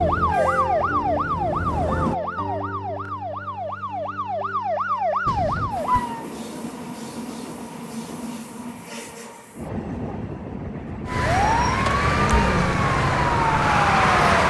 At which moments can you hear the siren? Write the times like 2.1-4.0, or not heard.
0.0-6.2, 11.1-14.4.